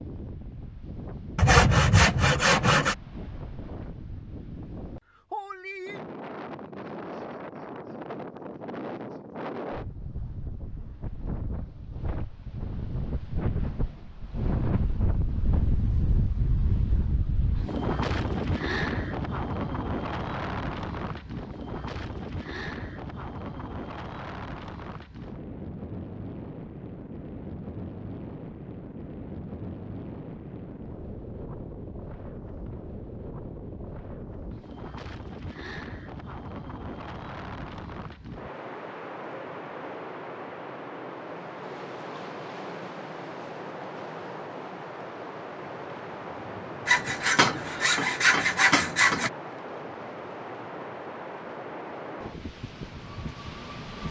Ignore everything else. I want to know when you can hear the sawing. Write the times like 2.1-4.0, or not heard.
1.4-3.0, 46.9-49.3.